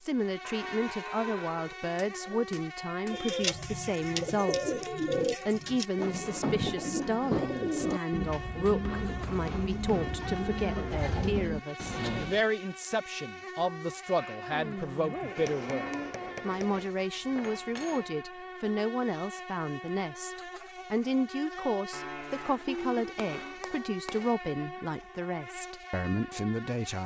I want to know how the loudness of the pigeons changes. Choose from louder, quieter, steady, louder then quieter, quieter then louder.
steady.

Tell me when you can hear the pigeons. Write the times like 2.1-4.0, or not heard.
3.0-12.4.